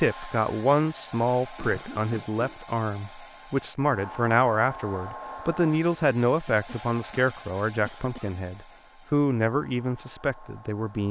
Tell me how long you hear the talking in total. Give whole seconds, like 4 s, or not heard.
11 s.